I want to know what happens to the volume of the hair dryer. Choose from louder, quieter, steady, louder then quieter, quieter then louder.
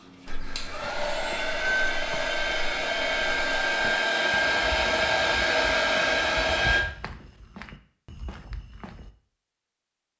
louder.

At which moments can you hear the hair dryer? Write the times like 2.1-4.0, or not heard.
0.0-6.8.